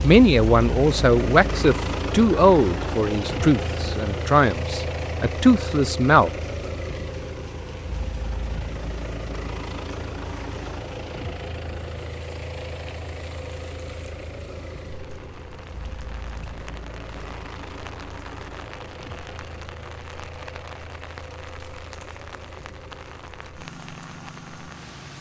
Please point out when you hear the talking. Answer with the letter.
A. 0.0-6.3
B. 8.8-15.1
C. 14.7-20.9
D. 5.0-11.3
A.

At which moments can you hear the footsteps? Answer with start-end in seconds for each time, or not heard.
not heard.